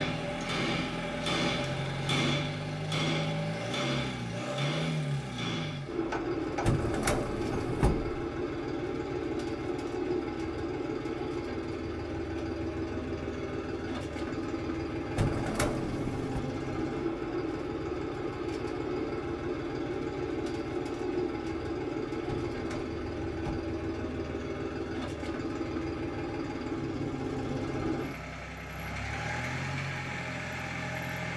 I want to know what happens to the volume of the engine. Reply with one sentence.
The loudness of the engine stays about the same.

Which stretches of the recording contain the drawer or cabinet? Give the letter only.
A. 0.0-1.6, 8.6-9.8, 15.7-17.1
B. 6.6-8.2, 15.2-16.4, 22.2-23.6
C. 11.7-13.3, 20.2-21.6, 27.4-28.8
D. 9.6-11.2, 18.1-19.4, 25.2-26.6
B.